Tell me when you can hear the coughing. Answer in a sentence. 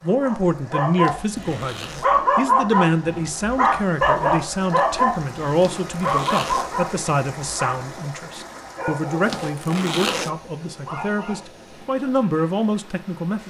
The coughing can't be heard in this clip.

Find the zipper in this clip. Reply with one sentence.
The zipper can be heard from 1.0 to 2.1 s, from 5.5 to 6.8 s and from 9.2 to 10.3 s.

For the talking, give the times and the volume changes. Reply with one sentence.
You can hear the talking from 0.0 to 13.4 s, at a steady volume.